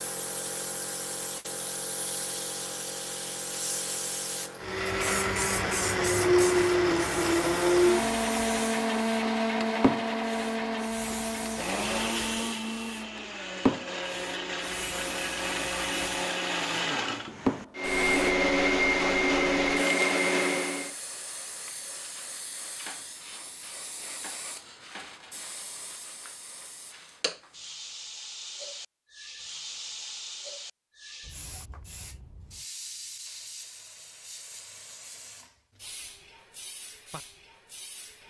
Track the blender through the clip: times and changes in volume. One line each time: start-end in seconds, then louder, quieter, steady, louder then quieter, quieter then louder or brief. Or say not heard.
4.6-20.9 quieter then louder.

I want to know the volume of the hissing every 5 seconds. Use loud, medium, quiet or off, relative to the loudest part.
loud, loud, loud, loud, medium, medium, medium, quiet.